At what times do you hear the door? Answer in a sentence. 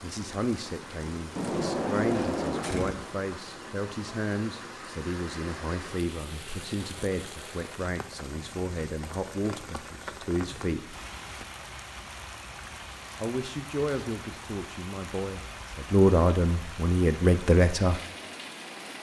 You can hear the door from 1.4 to 3.0 s.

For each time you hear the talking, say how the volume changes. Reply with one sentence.
You can hear the talking from 0.0 to 10.9 s, at a steady volume; and from 13.2 to 18.0 s, getting quieter then louder.